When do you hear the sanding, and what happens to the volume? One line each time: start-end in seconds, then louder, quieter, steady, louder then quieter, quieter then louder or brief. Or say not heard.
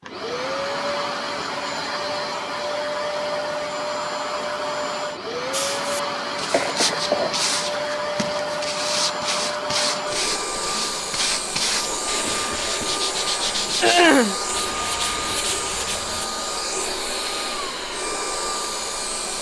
5.5-16.2 steady.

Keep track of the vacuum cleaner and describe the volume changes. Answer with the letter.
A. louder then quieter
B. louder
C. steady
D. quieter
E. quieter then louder
C.